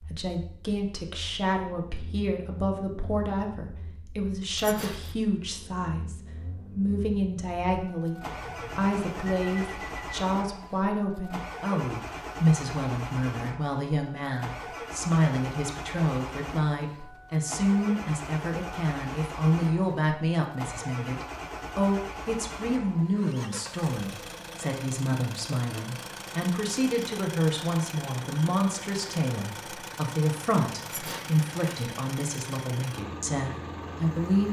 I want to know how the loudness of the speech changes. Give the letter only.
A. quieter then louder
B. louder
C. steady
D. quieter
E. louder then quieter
C.